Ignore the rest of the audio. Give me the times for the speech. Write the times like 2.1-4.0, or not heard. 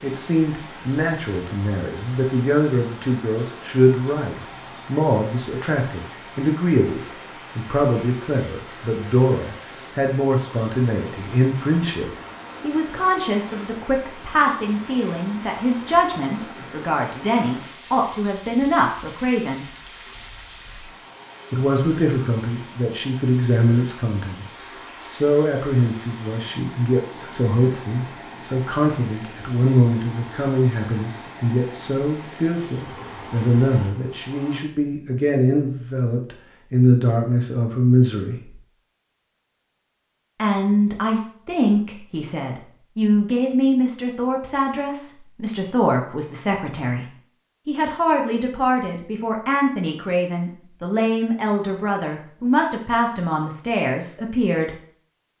0.0-19.6, 21.5-38.5, 40.4-54.8.